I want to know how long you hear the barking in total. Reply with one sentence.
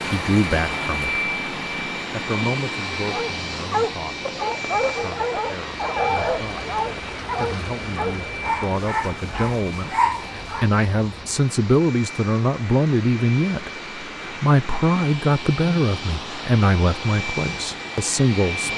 You can hear the barking for 8 seconds altogether.